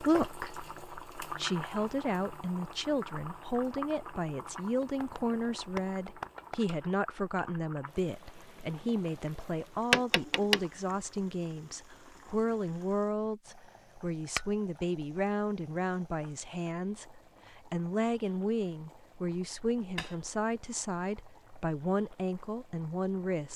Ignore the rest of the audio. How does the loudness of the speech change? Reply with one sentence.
The volume of the speech stays about the same.